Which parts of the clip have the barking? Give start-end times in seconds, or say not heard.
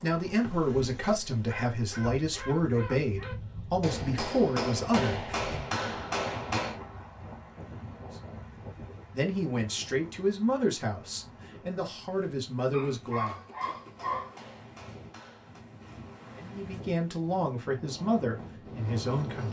1.4-3.4, 12.7-14.4.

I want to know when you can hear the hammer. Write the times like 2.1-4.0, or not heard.
3.8-6.8, 13.2-15.7.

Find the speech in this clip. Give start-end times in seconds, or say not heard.
0.0-5.7, 9.1-13.3, 16.4-19.4.